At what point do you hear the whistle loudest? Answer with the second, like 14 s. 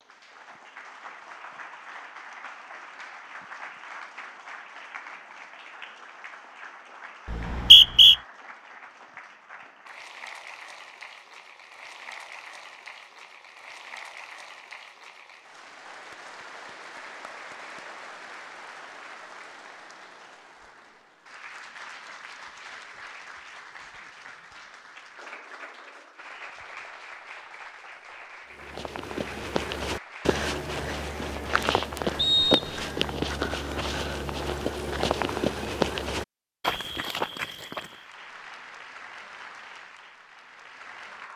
8 s.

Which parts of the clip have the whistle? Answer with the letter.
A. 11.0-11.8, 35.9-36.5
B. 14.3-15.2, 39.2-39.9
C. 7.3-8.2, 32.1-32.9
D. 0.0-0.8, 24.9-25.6
C.